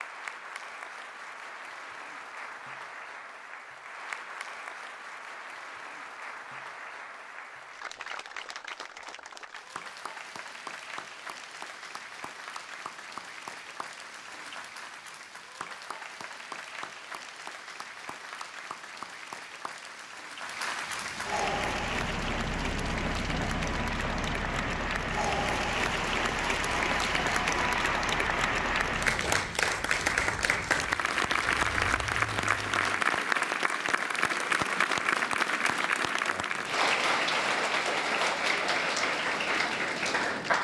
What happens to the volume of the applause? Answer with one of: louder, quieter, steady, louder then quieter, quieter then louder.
louder.